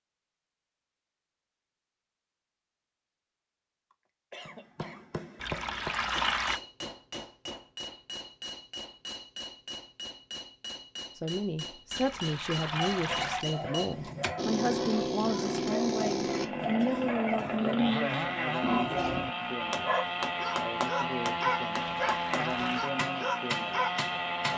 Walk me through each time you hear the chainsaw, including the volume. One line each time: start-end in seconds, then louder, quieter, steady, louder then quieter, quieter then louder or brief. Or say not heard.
14.3-24.5 steady.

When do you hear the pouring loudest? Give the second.
6 s.